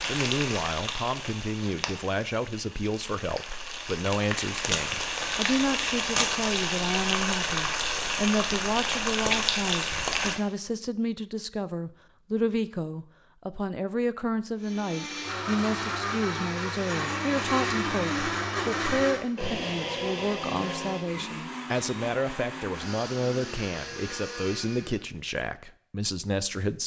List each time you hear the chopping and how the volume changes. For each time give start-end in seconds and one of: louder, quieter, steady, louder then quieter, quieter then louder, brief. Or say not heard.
not heard.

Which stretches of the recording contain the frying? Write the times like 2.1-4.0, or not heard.
0.0-10.4.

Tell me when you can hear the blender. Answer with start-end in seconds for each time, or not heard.
14.6-25.1.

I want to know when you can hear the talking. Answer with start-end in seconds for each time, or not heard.
0.1-26.8.